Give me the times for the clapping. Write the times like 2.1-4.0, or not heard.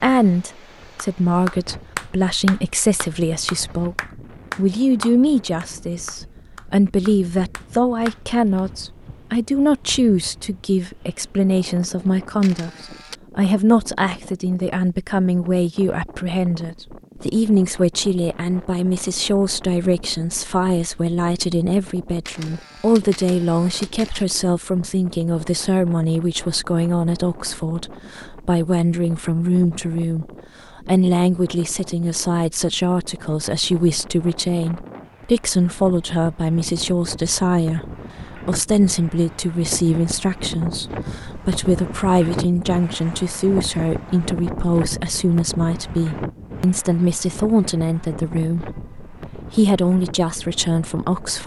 0.9-8.6.